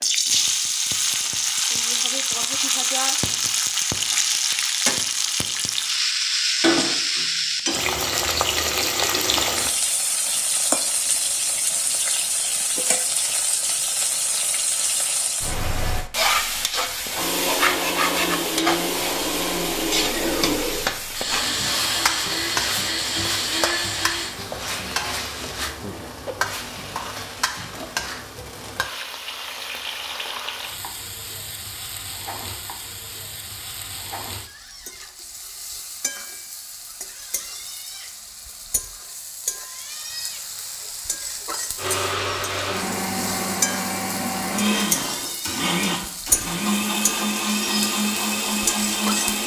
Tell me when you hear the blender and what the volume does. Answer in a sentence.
The blender can be heard from 17.1 to 24.4 s, at a steady volume; and from 41.8 to 49.4 s, at a steady volume.